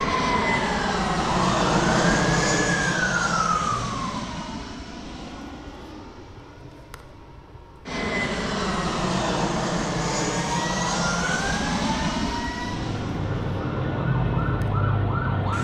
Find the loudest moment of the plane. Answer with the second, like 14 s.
2 s.